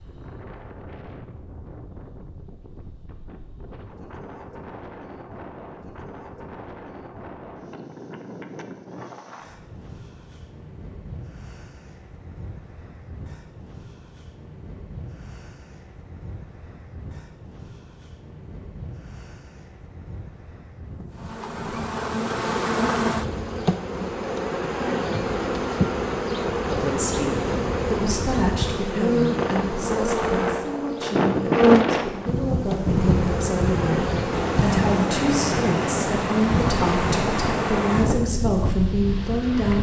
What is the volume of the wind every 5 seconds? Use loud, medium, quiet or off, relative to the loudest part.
quiet, quiet, quiet, quiet, quiet, medium, loud, loud.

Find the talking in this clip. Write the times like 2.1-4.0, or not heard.
26.6-39.7.